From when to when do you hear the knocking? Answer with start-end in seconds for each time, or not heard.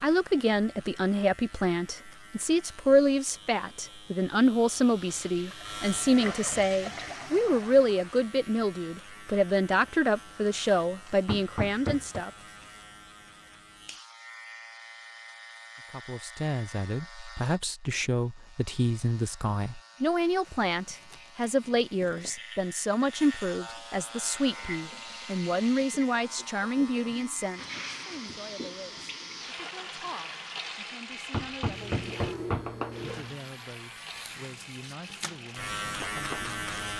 11.1-12.2, 31.1-32.7.